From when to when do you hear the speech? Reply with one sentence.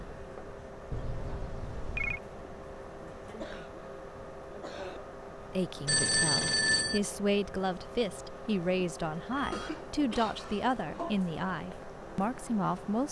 The speech can be heard from 5.5 to 13.0 s.